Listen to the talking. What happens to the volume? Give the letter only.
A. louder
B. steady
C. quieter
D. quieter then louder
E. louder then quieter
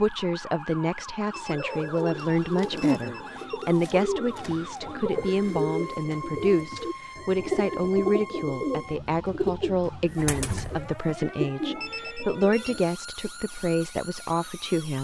B.